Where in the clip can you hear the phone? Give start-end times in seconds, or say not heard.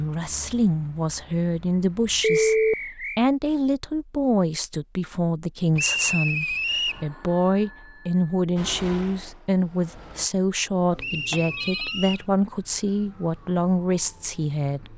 2.2-2.8, 6.8-8.3, 10.9-11.9.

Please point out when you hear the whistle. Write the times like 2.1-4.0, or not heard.
2.2-3.2, 5.8-7.0, 10.9-12.2.